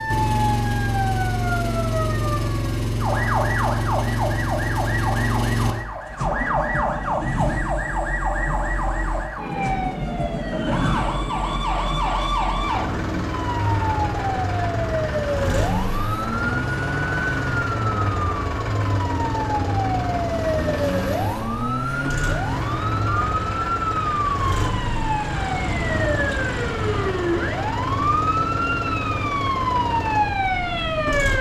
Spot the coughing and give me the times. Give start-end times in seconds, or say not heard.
not heard.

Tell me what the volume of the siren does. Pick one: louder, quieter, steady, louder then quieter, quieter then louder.
steady.